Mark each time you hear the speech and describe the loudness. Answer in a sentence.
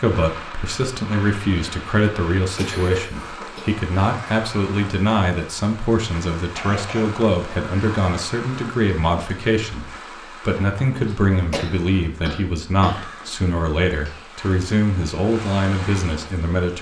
The speech can be heard from 0.0 to 16.7 s, at a steady volume.